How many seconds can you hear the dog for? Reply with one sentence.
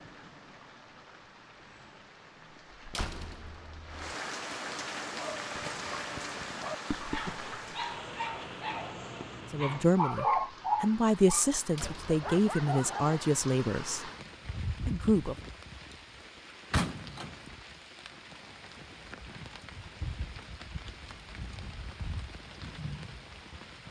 You can hear the dog for 8 seconds altogether.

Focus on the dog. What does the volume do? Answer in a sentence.
The loudness of the dog goes up, then down.